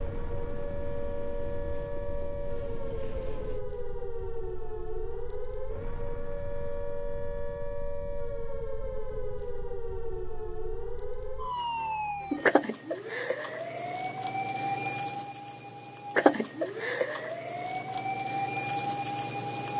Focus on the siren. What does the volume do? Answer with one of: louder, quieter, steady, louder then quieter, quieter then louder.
louder.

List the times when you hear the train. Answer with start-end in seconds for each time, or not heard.
0.0-3.6.